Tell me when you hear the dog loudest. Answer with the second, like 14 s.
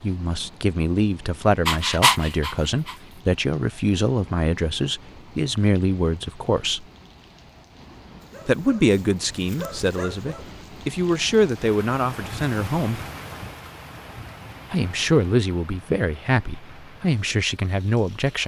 2 s.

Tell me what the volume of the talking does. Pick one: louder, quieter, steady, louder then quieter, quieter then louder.
steady.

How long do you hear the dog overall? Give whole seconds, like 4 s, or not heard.
4 s.